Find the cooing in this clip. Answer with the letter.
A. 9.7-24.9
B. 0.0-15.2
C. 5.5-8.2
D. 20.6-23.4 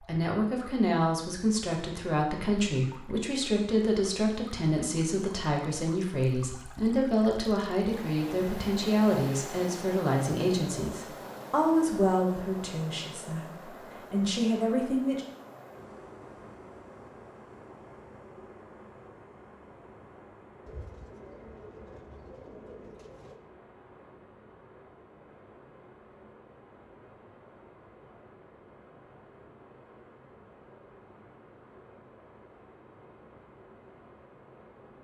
D.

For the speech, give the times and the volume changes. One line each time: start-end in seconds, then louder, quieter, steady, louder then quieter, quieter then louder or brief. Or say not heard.
0.0-15.2 steady.